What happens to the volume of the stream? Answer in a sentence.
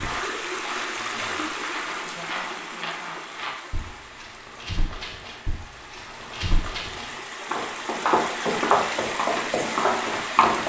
The loudness of the stream goes down, then up.